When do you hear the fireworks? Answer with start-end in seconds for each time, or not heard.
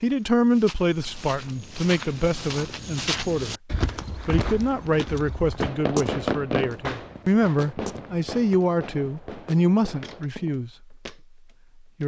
4.3-10.7.